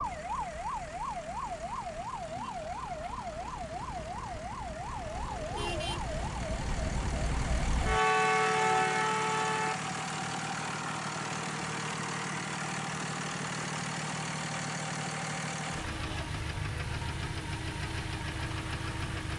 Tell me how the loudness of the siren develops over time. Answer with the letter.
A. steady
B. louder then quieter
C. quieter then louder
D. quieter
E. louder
E.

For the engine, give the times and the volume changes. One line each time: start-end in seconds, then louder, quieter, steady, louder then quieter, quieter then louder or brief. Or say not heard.
0.0-19.3 louder.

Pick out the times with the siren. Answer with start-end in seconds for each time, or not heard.
0.0-9.8.